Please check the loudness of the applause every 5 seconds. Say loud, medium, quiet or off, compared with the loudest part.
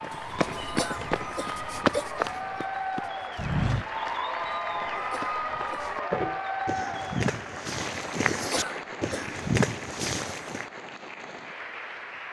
loud, loud, medium.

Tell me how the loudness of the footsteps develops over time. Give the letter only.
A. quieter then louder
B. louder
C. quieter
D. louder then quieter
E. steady
A.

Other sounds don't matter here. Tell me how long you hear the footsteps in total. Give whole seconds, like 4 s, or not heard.
11 s.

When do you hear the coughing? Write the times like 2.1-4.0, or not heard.
0.8-2.0, 5.1-5.9, 8.5-9.3.